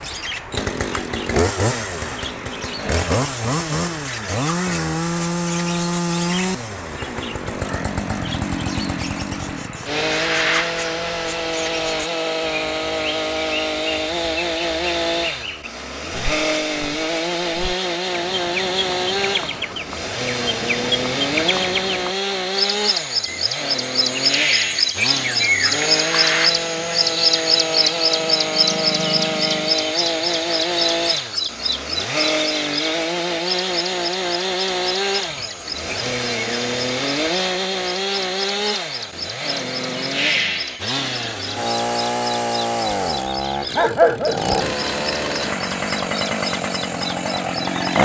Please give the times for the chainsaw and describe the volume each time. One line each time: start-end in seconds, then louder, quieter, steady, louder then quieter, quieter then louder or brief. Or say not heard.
0.0-47.9 steady.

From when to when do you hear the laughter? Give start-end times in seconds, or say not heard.
not heard.